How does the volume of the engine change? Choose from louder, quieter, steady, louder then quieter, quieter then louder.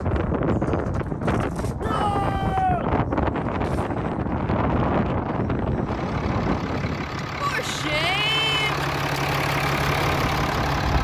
louder.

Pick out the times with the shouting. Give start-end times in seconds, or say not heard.
1.8-2.9, 7.4-8.9.